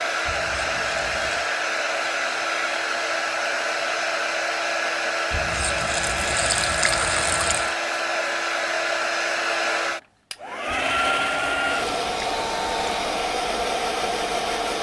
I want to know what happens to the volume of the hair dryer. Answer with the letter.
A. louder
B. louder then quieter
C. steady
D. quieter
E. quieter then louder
C.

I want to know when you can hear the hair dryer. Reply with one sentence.
You can hear the hair dryer from 0.0 to 14.7 s.